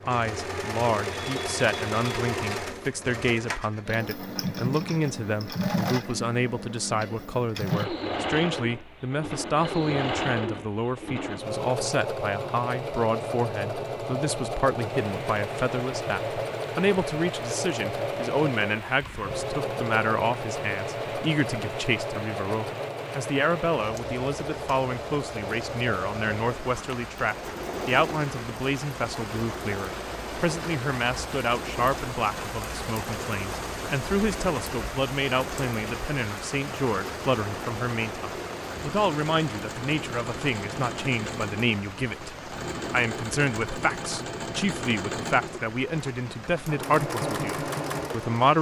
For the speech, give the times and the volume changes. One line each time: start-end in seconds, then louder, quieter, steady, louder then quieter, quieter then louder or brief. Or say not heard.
0.1-48.5 steady.